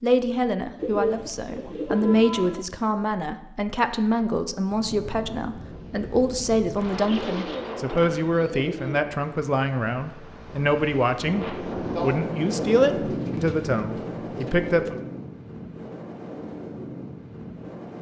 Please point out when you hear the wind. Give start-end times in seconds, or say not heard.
4.7-17.9.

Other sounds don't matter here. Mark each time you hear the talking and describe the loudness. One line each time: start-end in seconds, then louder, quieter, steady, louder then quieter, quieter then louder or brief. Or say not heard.
0.0-14.9 steady.